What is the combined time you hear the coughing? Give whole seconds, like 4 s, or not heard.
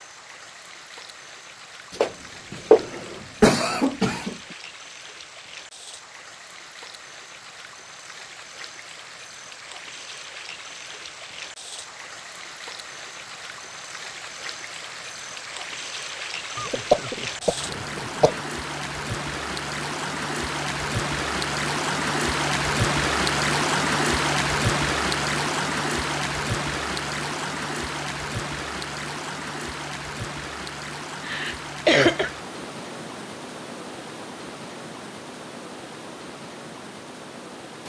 5 s.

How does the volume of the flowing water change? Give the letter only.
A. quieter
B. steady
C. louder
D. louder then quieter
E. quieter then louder
D.